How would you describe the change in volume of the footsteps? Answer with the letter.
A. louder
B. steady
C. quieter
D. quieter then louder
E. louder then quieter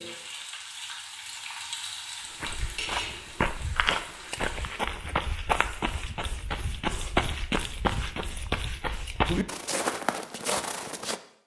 B.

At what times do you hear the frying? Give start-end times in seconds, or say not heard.
0.0-4.8.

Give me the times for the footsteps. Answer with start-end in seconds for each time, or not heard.
2.2-11.2.